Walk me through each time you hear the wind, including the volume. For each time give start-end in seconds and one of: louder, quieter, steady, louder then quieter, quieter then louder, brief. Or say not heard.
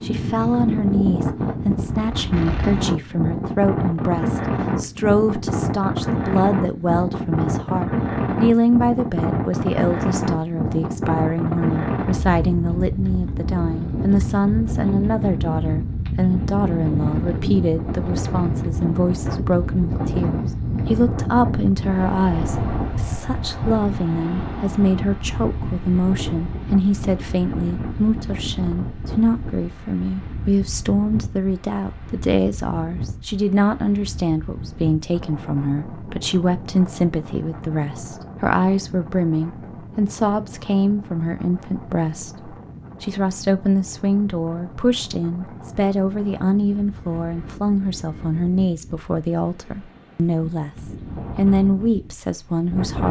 0.0-53.0 quieter.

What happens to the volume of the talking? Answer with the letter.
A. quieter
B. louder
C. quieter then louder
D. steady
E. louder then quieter
D.